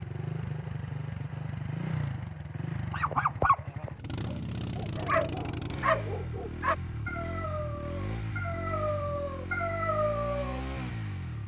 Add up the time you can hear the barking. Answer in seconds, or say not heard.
8 s.